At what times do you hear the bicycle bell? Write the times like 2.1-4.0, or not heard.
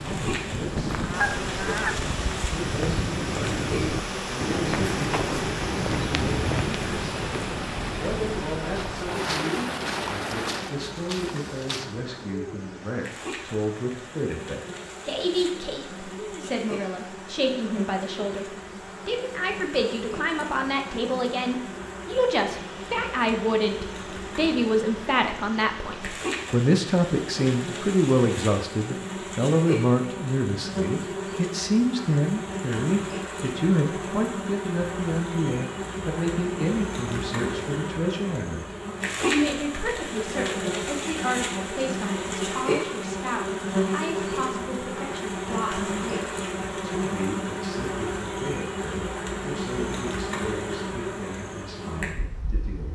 not heard.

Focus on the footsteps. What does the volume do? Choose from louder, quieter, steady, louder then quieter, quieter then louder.
quieter.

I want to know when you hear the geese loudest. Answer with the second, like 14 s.
1 s.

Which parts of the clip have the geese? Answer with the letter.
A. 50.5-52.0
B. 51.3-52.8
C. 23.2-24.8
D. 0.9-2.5
D.